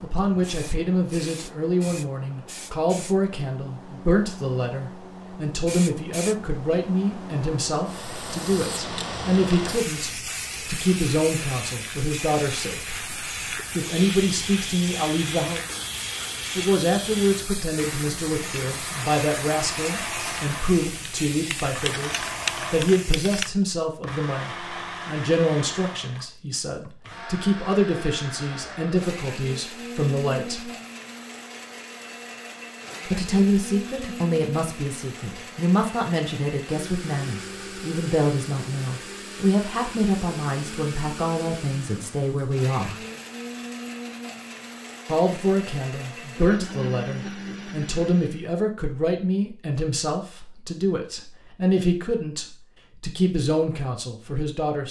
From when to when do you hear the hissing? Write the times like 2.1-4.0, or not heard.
0.0-23.5.